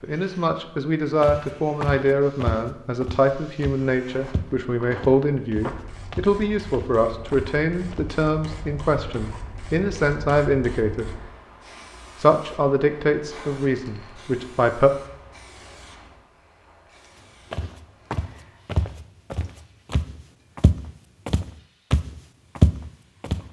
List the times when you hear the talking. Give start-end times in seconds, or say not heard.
0.0-11.1, 12.2-14.9.